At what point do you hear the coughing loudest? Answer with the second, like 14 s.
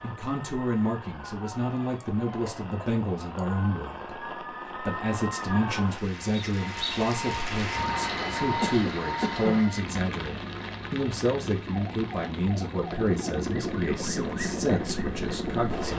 9 s.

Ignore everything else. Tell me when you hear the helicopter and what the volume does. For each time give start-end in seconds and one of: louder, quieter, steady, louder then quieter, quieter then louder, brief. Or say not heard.
11.7-15.9 louder.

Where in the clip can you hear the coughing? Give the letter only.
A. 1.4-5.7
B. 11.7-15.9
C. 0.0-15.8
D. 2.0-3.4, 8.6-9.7
D.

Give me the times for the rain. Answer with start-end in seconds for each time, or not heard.
0.0-15.8.